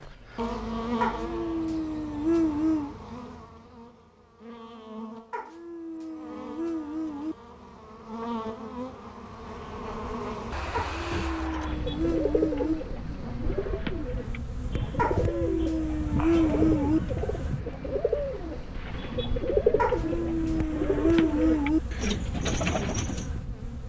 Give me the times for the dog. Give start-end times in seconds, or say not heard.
1.0-3.0, 5.3-7.3, 10.7-12.8, 14.9-17.0, 19.8-21.8.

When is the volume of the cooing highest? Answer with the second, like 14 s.
20 s.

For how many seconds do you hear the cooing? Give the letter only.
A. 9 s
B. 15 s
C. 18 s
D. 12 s
D.